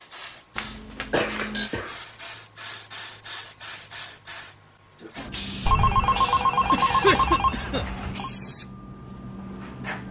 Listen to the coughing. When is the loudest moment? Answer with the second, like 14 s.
7 s.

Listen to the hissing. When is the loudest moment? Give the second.
6 s.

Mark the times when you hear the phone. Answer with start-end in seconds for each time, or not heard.
0.6-1.7, 5.7-8.3.